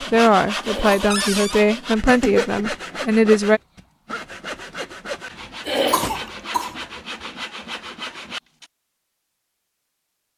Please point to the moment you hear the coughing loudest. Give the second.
6 s.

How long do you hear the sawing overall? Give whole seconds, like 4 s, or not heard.
9 s.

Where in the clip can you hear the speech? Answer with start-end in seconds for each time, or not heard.
0.0-3.6.